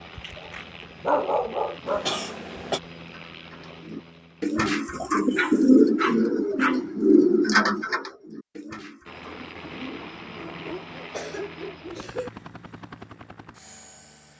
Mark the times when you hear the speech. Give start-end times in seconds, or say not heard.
not heard.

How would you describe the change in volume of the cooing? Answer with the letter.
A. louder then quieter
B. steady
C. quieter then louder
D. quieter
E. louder
A.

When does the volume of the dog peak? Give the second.
1 s.